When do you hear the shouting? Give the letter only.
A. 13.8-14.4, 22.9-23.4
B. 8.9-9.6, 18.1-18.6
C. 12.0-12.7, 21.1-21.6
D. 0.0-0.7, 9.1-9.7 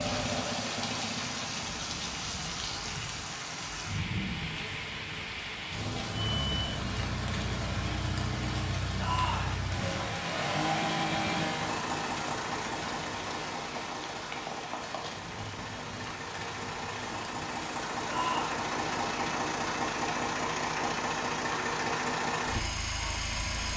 B.